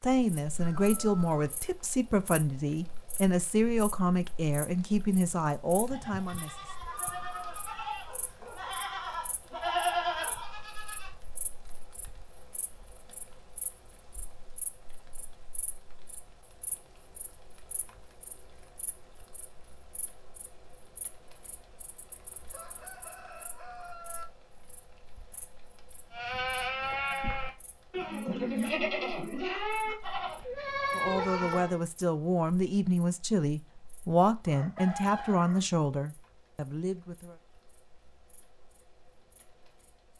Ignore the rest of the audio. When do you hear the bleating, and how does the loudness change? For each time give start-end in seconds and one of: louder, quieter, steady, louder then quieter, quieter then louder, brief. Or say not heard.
5.9-11.2 louder
26.1-31.8 steady.